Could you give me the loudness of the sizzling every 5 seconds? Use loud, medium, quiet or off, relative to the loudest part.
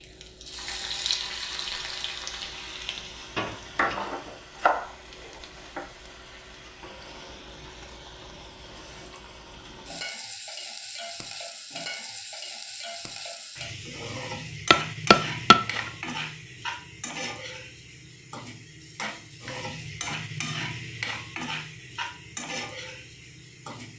loud, medium, loud, loud, loud.